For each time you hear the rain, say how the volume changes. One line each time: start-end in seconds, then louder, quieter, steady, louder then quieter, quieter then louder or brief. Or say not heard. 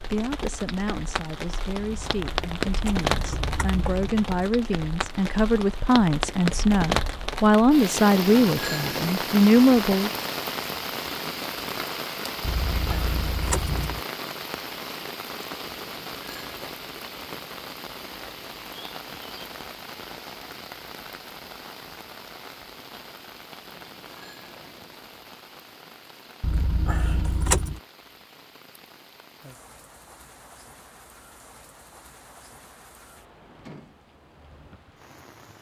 0.0-35.5 quieter.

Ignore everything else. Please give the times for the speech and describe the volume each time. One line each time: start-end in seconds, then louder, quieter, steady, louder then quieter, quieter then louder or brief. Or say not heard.
0.1-10.1 louder.